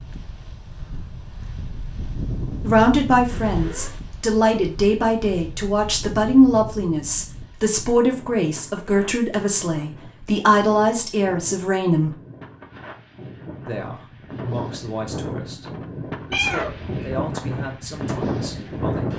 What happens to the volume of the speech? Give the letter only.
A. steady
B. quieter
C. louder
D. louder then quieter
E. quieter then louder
B.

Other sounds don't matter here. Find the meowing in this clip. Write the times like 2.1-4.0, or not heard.
3.3-4.0, 16.3-17.1.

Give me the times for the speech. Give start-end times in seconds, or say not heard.
2.6-12.2, 13.7-19.1.